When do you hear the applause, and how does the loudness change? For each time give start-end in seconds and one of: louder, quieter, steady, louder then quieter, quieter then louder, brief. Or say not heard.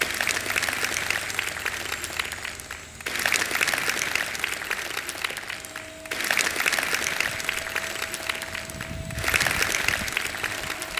0.0-10.9 steady.